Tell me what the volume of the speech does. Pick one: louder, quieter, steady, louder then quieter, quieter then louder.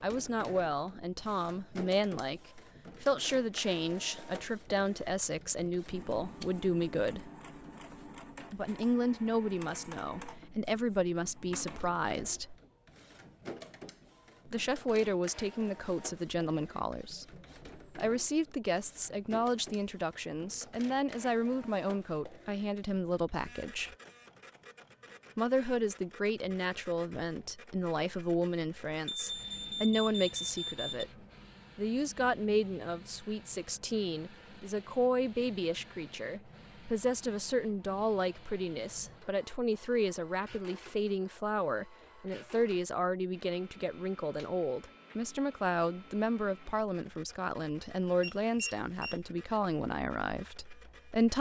steady.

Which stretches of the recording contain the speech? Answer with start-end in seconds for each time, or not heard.
0.0-7.3, 8.5-12.6, 14.4-23.9, 25.4-51.3.